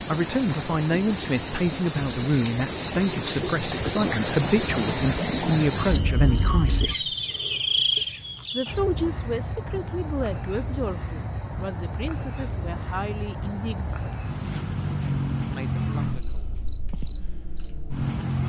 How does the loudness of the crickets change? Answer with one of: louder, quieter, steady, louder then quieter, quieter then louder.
quieter.